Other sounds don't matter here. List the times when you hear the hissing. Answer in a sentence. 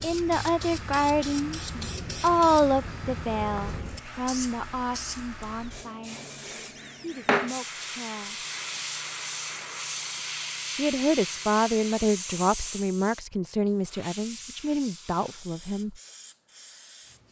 You can hear the hissing from 0.0 to 17.2 s.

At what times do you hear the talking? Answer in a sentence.
The talking can be heard from 0.0 to 6.2 s, from 6.9 to 8.3 s and from 10.8 to 16.0 s.